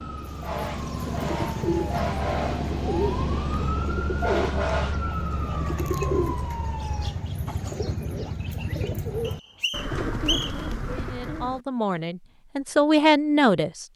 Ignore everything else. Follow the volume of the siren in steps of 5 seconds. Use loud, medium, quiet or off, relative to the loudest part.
loud, loud, off.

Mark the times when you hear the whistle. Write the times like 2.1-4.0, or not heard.
9.2-10.7.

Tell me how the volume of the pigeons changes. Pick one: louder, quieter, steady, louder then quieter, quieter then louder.
steady.